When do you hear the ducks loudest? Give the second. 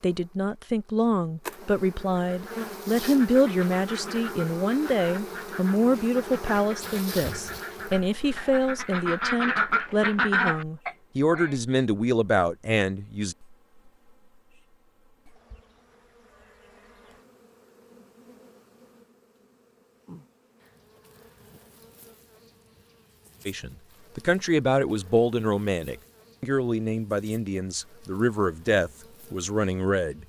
10 s.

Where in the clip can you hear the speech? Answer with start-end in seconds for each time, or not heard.
0.0-13.3, 23.4-30.2.